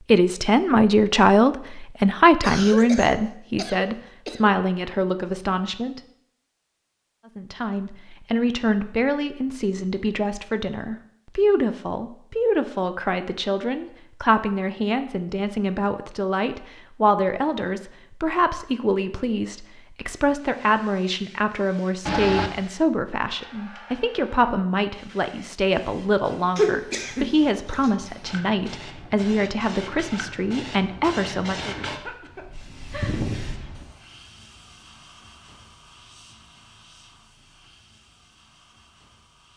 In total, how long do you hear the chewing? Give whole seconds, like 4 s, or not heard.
not heard.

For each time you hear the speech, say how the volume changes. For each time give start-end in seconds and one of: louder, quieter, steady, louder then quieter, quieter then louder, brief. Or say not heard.
0.1-6.0 quieter
7.3-31.9 steady.